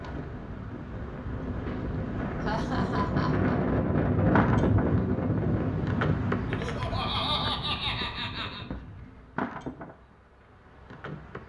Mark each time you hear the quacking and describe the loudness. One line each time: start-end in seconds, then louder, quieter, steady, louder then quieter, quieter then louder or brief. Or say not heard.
not heard.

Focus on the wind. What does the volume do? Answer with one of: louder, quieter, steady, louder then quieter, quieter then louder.
louder then quieter.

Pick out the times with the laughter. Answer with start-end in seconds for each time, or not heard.
2.4-3.5, 6.5-8.7.